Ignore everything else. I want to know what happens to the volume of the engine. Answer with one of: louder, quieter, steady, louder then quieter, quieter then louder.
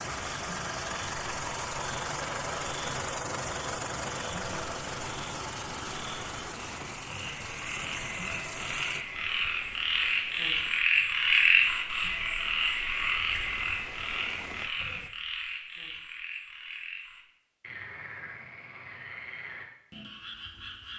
quieter.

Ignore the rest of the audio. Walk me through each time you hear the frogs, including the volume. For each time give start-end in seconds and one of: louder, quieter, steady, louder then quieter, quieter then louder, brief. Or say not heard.
0.0-20.9 louder then quieter.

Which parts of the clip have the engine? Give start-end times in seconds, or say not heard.
0.0-9.1.